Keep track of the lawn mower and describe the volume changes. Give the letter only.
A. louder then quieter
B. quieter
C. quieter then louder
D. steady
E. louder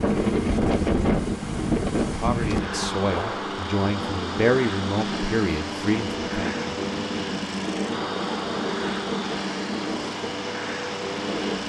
D.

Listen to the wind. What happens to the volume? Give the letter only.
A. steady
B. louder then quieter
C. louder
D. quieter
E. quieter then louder
D.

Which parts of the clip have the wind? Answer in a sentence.
The wind can be heard from 0.0 to 11.6 s.